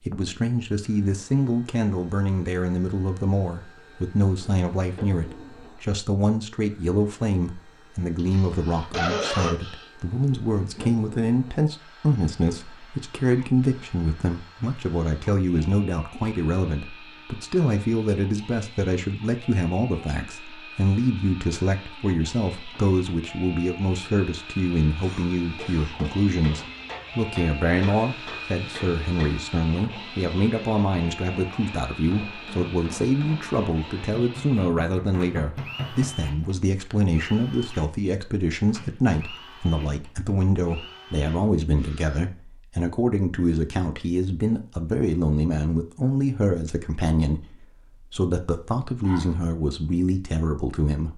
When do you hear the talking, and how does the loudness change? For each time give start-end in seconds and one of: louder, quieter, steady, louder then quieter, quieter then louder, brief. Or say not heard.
0.0-51.1 steady.